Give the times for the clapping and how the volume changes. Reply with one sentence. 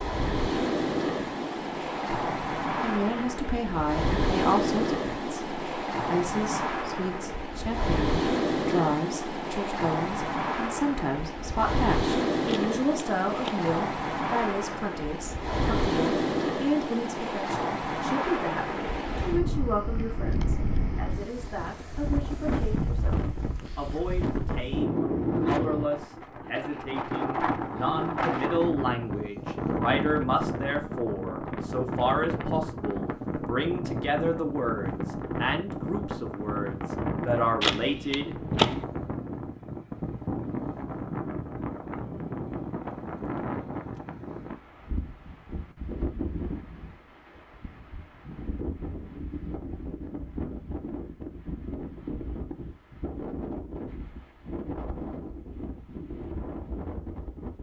The clapping can't be heard in this clip.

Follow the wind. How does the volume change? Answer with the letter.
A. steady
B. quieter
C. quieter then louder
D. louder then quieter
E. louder
B.